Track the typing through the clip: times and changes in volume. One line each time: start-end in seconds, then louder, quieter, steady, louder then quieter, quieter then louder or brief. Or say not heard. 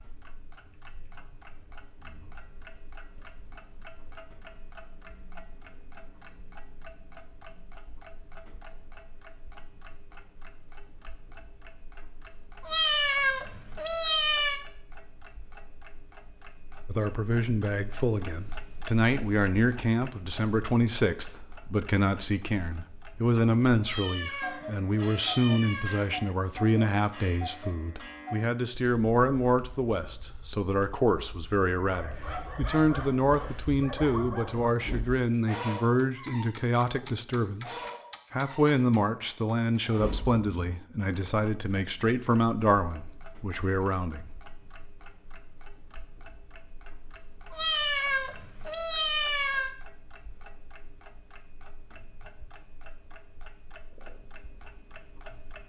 not heard.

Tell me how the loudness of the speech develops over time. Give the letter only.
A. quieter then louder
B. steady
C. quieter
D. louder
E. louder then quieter
B.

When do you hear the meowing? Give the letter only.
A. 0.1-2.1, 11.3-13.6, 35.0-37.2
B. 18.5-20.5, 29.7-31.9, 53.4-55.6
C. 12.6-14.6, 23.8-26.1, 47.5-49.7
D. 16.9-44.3
C.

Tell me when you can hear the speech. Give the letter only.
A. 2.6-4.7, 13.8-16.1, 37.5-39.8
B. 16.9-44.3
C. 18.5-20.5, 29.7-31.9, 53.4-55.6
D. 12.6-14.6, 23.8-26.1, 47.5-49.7
B.